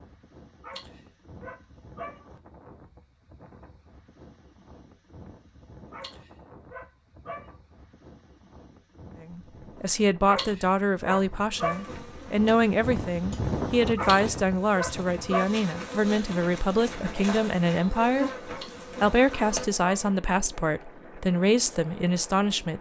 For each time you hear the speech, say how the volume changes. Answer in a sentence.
The speech can be heard from 9.2 to 22.7 s, at a steady volume.